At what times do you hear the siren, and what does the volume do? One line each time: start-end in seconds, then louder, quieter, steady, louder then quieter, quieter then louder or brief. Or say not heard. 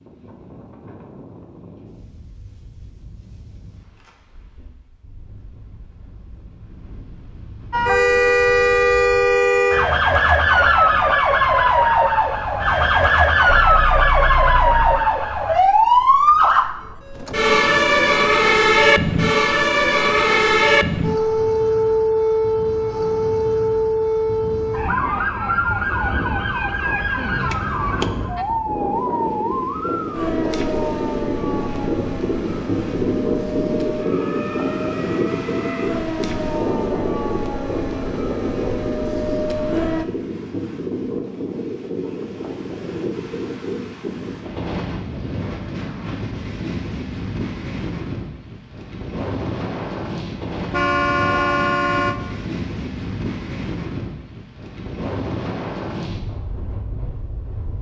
7.7-40.0 quieter.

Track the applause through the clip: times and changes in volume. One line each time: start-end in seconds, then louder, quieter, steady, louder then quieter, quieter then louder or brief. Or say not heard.
not heard.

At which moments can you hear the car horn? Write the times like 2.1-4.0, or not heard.
13.6-15.1, 50.7-52.1.